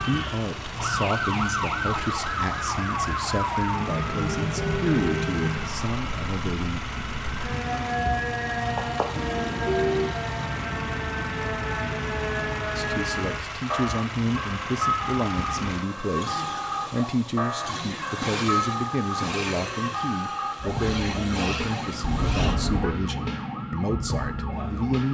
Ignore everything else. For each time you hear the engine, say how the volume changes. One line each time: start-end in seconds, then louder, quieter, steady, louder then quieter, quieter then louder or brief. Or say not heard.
0.0-22.6 steady.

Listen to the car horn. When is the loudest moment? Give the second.
10 s.